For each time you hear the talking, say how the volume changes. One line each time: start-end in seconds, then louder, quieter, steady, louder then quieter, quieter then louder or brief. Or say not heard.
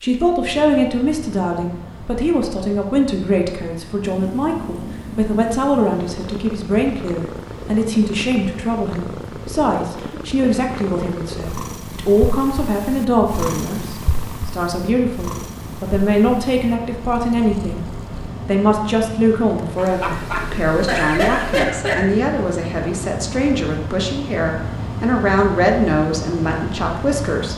0.0-17.8 steady
18.4-27.5 steady.